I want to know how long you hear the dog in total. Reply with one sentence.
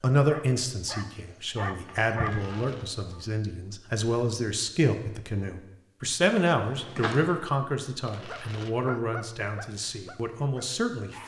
The dog can be heard for 5 seconds in total.